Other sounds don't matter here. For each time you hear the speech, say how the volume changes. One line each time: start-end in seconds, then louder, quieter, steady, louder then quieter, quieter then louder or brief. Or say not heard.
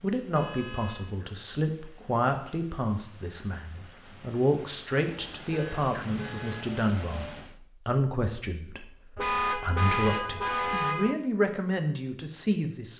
0.0-12.9 steady.